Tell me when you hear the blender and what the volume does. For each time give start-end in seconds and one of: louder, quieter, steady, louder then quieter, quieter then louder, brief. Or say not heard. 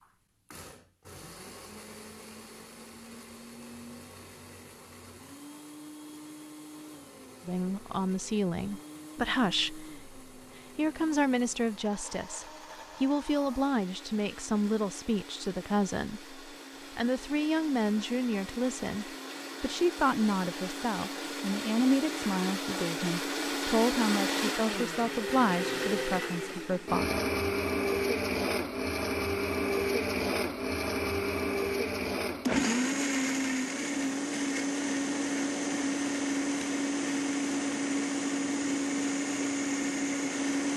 0.0-40.7 louder.